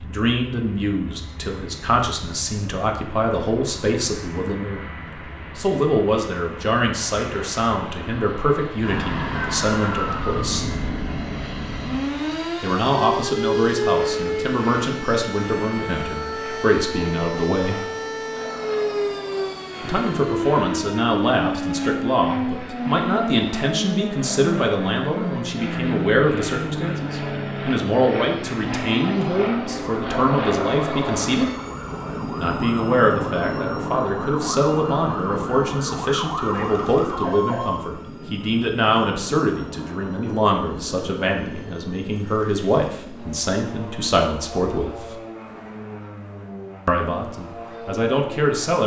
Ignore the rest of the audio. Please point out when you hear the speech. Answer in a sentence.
The speech can be heard from 0.0 to 10.7 s, from 12.6 to 17.9 s, from 19.8 to 31.5 s, from 32.4 to 45.1 s and from 46.9 to 48.8 s.